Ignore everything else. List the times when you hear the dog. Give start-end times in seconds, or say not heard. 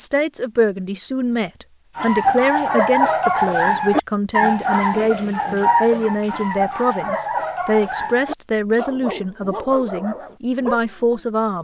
1.9-11.2.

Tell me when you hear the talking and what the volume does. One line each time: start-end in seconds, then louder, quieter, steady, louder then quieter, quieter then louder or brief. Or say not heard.
0.0-11.5 steady.